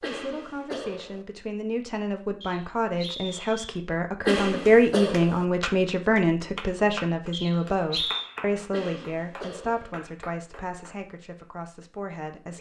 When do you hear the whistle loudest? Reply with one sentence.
The loudest moment of the whistle is at 8 seconds.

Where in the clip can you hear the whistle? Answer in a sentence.
The whistle can be heard from 2.4 to 3.8 s and from 7.3 to 8.2 s.